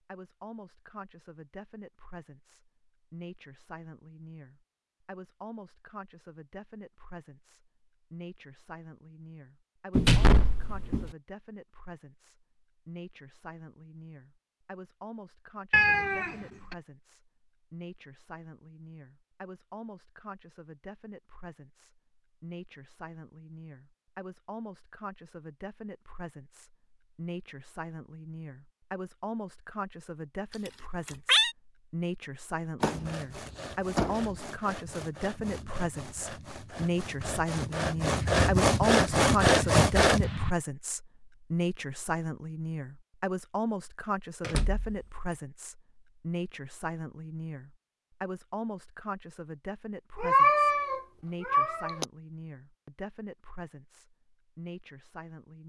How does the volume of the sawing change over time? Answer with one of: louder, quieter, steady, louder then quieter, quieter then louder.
louder.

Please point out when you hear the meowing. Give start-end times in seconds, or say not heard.
15.7-16.8, 30.5-31.6, 50.1-52.0.